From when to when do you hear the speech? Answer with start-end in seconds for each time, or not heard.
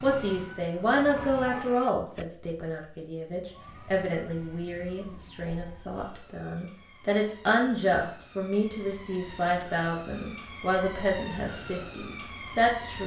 0.0-13.0.